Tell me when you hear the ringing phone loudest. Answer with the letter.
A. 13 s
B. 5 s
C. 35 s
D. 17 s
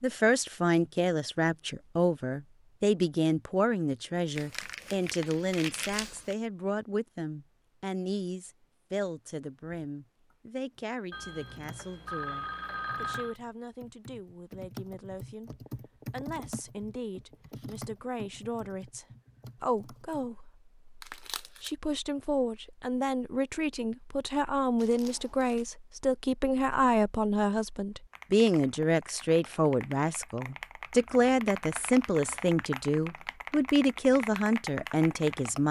A.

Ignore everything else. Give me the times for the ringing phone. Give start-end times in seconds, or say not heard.
11.1-13.3.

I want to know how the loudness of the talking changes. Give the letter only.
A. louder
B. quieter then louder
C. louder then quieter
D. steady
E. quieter
B.